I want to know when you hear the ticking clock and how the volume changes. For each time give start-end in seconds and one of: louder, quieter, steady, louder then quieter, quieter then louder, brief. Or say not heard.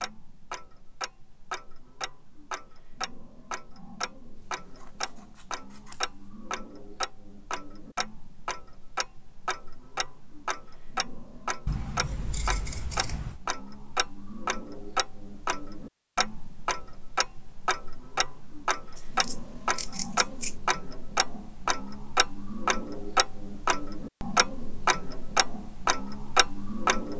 0.0-27.1 louder.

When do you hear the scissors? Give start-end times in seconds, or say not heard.
4.3-6.2, 11.7-13.4, 18.9-20.6.